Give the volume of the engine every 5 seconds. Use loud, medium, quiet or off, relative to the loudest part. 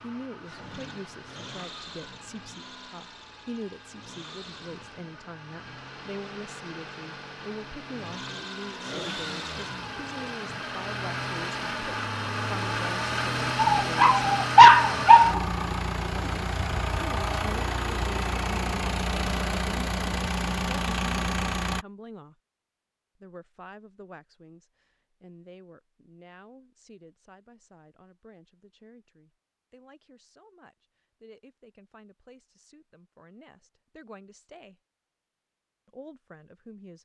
quiet, medium, loud, loud, loud, off, off, off.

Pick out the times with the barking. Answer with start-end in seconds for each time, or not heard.
13.6-15.4.